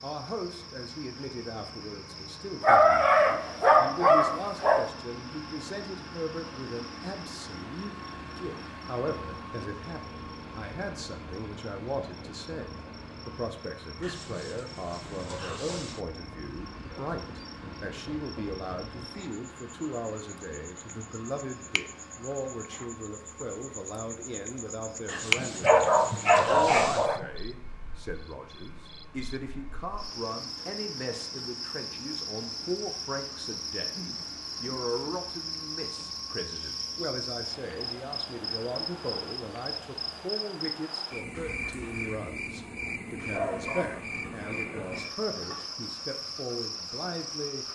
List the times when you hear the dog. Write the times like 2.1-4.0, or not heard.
2.6-4.8, 25.4-27.2, 42.9-45.6.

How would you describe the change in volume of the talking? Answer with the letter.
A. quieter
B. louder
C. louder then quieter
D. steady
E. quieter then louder
D.